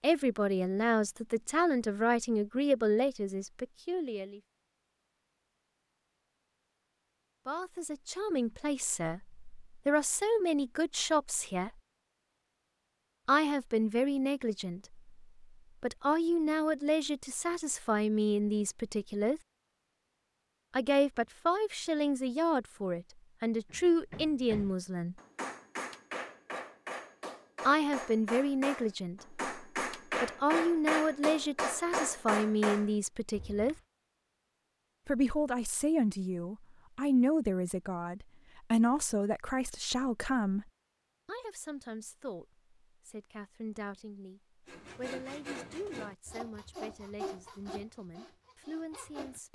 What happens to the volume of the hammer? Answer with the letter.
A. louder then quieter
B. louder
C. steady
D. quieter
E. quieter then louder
B.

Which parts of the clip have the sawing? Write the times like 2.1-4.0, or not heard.
44.6-49.5.